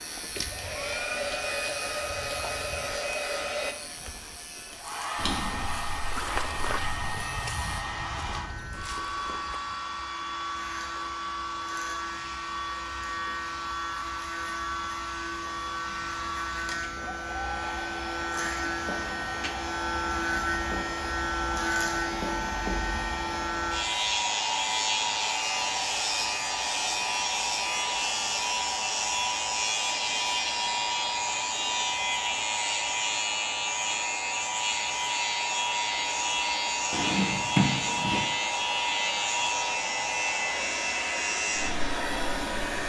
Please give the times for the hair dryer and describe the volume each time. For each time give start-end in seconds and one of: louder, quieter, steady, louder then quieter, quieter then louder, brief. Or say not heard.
0.0-42.8 steady.